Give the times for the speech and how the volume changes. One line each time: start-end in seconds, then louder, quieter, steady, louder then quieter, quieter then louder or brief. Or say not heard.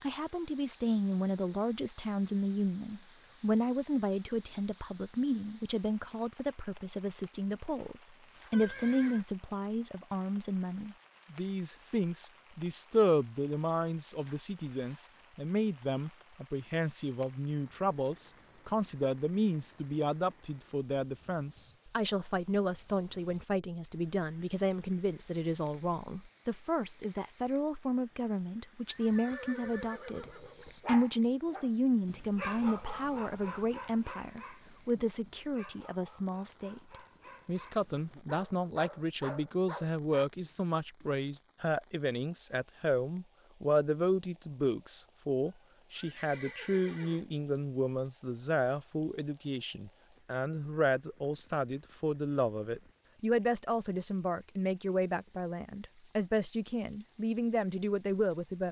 0.0-30.2 steady
30.9-58.6 steady.